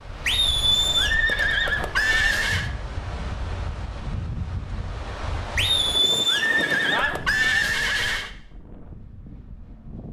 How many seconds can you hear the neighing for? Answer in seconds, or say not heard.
5 s.